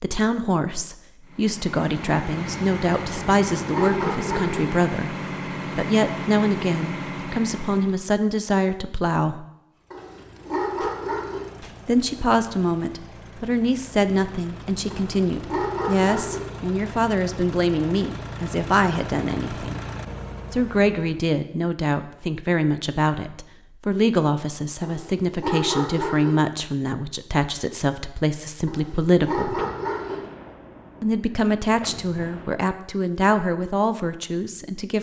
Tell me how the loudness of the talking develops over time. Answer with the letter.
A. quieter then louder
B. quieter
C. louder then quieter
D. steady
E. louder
D.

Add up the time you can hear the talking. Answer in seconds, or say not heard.
30 s.